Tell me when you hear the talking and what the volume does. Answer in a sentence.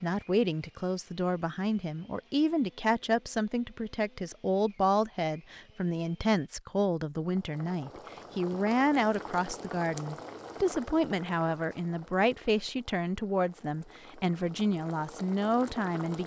You can hear the talking from 0.0 to 16.2 s, at a steady volume.